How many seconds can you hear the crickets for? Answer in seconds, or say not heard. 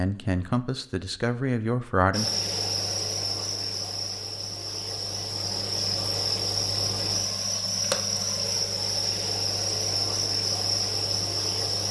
10 s.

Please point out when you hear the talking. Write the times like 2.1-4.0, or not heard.
0.0-2.3.